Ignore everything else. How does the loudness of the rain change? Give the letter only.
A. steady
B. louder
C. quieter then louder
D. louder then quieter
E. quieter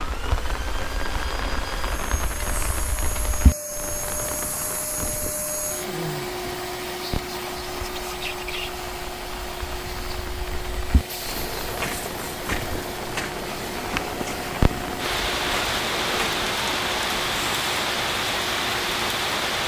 C.